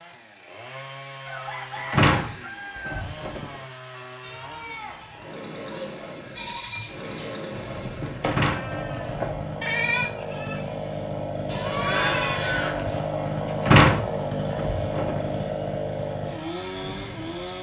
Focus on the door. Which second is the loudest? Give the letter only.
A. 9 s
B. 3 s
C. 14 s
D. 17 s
C.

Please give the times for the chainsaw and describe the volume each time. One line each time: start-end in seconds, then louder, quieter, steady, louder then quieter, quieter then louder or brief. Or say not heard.
0.0-17.5 louder.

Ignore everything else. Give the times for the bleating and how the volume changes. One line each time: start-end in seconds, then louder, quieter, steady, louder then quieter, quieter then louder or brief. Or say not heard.
4.2-13.0 louder.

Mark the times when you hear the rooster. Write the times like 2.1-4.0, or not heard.
1.2-3.0.